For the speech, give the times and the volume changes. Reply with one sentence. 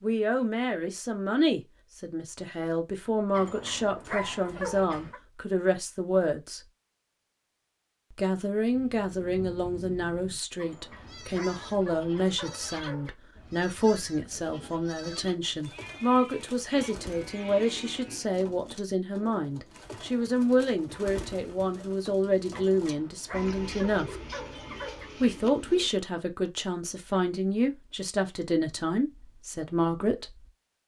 You can hear the speech from 0.0 to 6.6 s, getting quieter then louder; from 8.1 to 24.1 s, at a steady volume; and from 25.2 to 30.4 s, at a steady volume.